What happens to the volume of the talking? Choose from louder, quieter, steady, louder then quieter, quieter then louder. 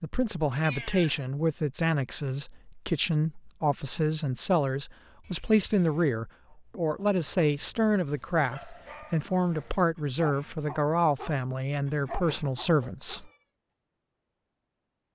steady.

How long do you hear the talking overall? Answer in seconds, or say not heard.
13 s.